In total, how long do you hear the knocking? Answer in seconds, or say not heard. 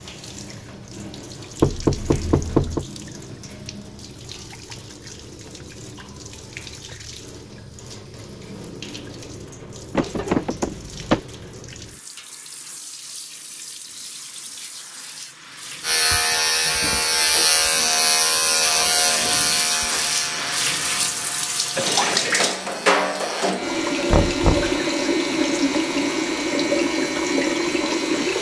3 s.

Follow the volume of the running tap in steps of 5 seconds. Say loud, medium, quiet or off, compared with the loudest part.
quiet, quiet, quiet, medium, loud, loud.